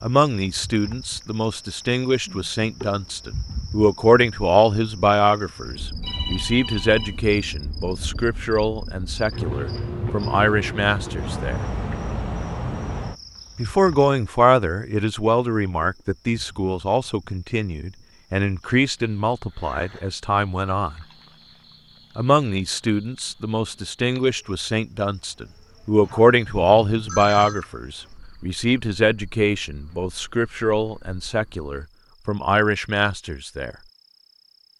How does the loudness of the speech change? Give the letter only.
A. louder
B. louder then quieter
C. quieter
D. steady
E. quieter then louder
D.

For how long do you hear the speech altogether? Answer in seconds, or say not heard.
31 s.